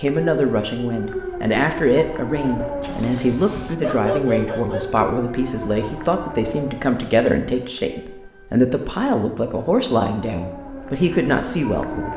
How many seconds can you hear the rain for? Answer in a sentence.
The rain can't be heard in this clip.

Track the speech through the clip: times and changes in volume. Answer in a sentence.
The speech can be heard from 0.0 to 12.1 s, at a steady volume.